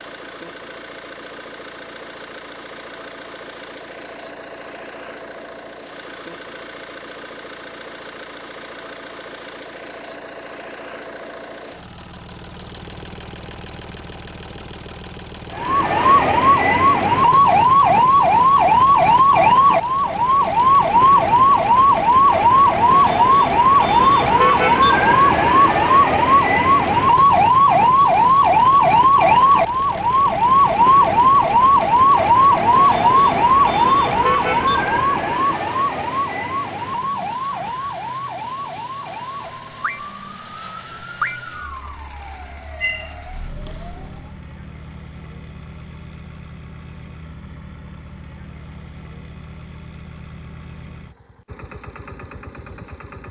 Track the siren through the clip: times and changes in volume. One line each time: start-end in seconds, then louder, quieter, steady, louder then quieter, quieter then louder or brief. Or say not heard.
15.5-44.5 quieter.